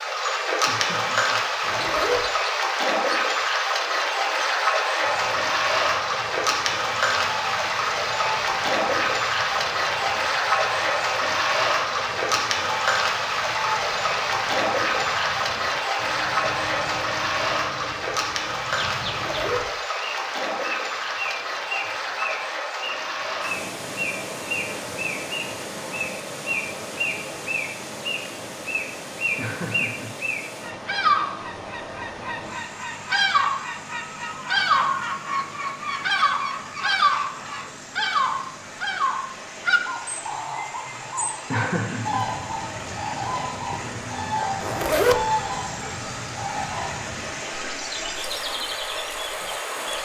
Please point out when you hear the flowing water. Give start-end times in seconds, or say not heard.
0.0-49.9.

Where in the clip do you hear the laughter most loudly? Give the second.
42 s.